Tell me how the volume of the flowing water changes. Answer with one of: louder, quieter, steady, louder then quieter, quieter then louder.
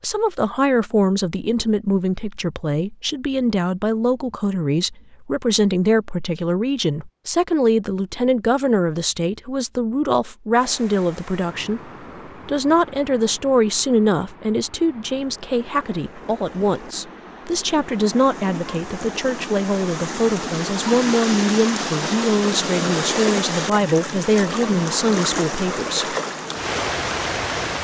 louder.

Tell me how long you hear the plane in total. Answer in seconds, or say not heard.
not heard.